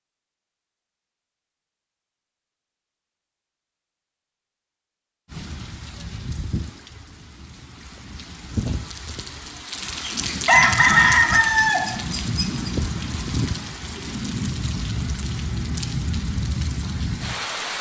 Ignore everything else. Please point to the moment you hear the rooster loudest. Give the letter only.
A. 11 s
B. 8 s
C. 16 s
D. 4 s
A.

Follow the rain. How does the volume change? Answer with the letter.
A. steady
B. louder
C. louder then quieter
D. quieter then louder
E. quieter
B.